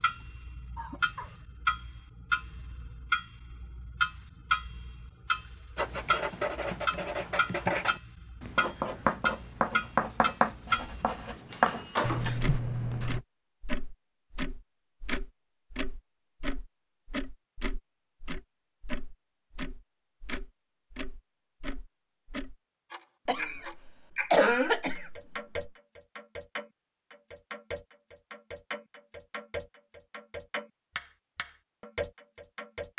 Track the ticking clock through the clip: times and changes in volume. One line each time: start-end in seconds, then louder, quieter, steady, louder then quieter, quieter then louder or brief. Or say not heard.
0.0-32.9 quieter.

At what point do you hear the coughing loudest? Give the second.
24 s.